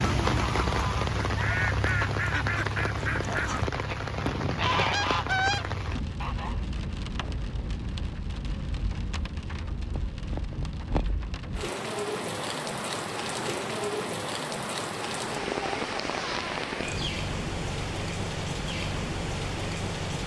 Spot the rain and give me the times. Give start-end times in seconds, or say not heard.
0.0-20.2.